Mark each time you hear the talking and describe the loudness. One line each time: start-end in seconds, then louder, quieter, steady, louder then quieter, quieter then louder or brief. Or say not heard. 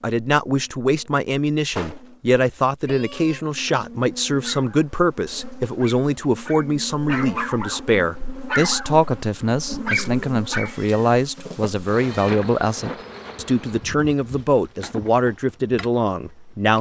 0.0-16.7 steady.